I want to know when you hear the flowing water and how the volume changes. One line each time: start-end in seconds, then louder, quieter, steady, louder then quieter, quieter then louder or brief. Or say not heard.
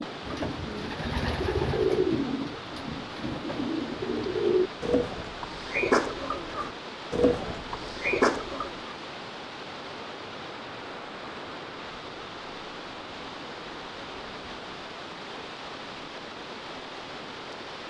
0.0-17.8 steady.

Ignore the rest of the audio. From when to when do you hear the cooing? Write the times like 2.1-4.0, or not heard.
0.0-8.9.